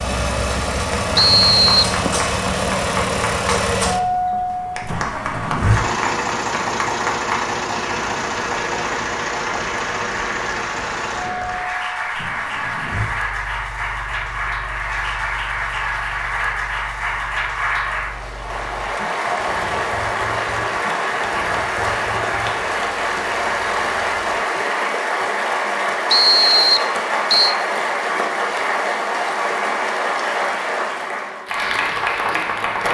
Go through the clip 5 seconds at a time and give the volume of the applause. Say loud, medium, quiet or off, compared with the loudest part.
medium, medium, medium, loud, loud, loud, loud.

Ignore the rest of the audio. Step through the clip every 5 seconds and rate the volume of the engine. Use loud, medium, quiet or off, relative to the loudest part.
loud, loud, medium, quiet, quiet, off, off.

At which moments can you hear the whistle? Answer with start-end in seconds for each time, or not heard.
1.1-1.9, 26.1-27.6.